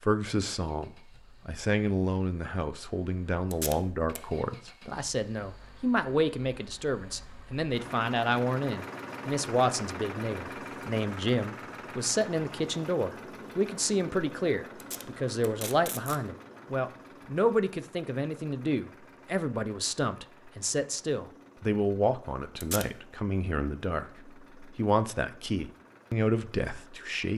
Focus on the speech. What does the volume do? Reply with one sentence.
The loudness of the speech stays about the same.